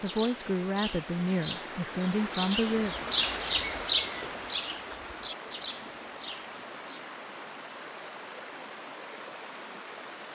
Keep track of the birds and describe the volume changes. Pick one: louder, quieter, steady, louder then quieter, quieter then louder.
louder then quieter.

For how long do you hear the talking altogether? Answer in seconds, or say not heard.
3 s.